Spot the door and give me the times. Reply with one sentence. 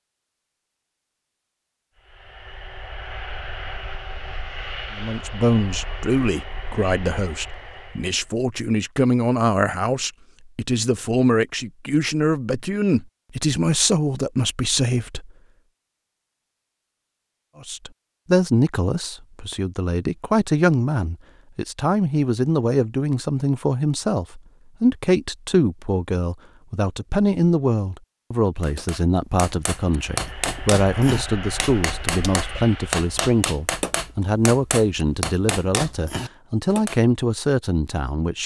The door can't be heard in this clip.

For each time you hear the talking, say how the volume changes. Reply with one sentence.
You can hear the talking from 4.9 to 15.3 s, at a steady volume; and from 17.6 to 38.4 s, at a steady volume.